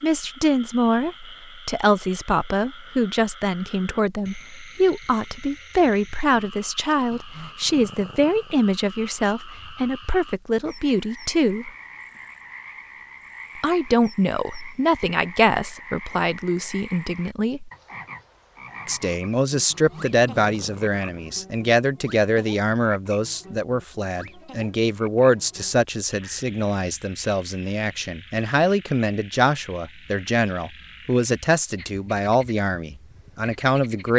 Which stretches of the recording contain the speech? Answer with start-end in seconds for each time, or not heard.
0.0-11.7, 13.6-17.7, 18.9-34.1.